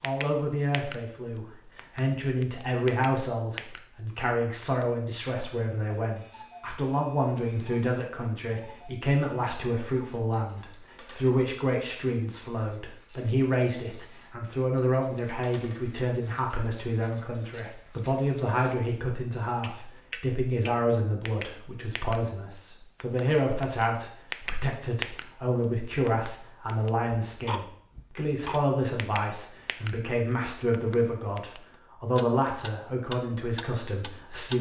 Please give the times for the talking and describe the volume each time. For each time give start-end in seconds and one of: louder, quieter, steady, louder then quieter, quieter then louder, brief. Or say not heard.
0.0-34.5 steady.